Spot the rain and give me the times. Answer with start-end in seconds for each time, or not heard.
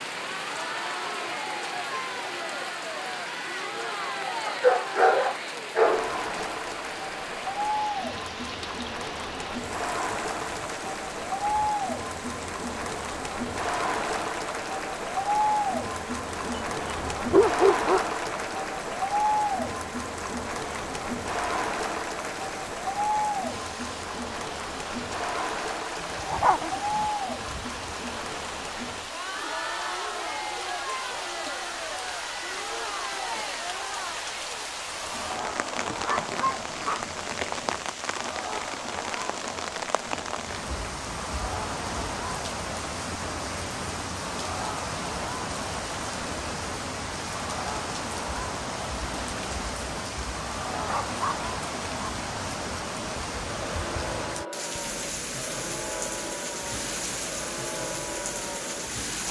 0.0-59.2.